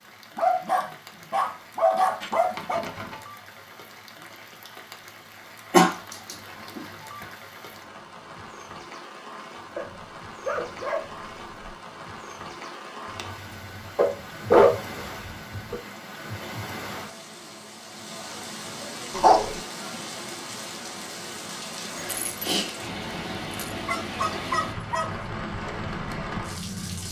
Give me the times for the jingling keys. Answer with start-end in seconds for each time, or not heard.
2.2-3.3, 13.1-13.9, 21.9-22.8.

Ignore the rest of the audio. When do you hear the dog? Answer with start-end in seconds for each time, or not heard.
0.3-2.9, 5.7-6.8, 9.8-11.8, 13.9-15.8, 19.1-19.6, 23.5-25.2.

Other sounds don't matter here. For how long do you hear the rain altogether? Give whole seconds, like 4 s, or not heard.
27 s.